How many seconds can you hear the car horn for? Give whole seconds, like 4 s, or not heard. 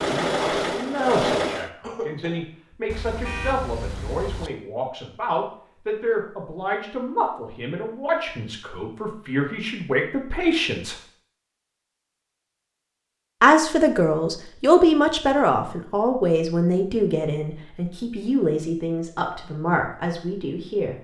2 s.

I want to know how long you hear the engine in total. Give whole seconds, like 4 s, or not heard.
2 s.